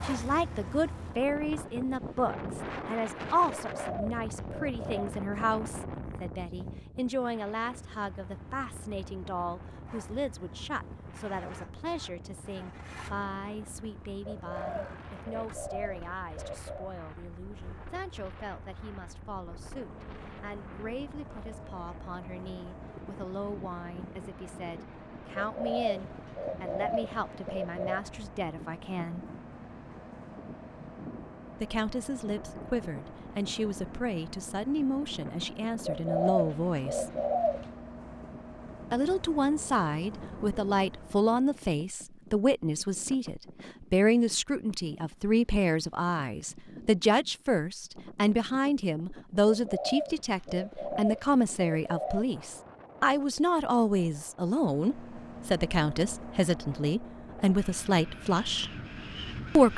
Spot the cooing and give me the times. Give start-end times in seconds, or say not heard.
3.6-5.1, 14.2-16.9, 25.4-28.1, 35.9-37.7, 49.5-52.2.